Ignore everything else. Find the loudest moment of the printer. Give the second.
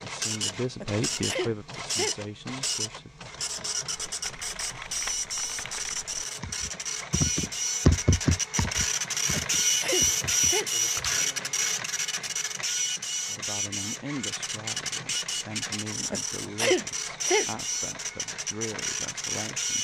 10 s.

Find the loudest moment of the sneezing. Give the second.
17 s.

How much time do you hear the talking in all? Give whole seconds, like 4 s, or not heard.
10 s.